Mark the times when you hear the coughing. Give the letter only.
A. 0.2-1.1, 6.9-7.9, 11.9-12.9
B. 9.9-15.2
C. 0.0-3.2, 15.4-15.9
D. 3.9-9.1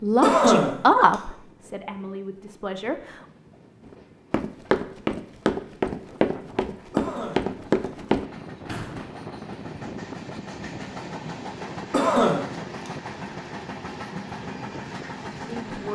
A.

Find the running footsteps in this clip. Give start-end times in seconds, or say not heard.
3.9-9.1.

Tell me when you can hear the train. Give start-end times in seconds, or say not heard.
0.0-15.9.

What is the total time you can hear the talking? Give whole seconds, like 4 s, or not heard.
4 s.